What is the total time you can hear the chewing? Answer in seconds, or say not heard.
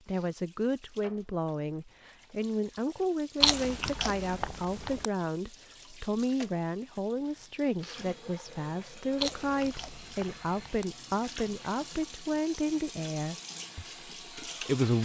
3 s.